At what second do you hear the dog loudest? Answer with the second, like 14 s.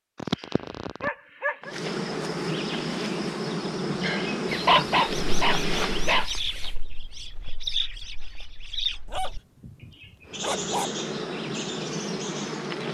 5 s.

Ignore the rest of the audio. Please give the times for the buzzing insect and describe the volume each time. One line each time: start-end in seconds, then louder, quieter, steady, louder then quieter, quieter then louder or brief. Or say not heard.
1.6-6.2 steady
10.2-12.8 brief.